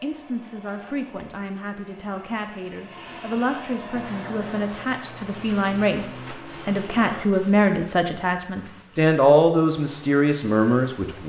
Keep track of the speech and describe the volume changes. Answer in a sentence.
The loudness of the speech goes up.